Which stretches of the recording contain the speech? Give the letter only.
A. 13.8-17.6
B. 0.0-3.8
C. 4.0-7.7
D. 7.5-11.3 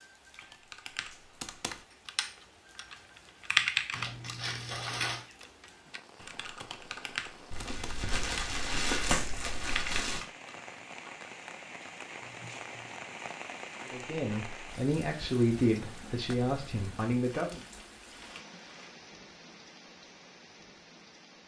A.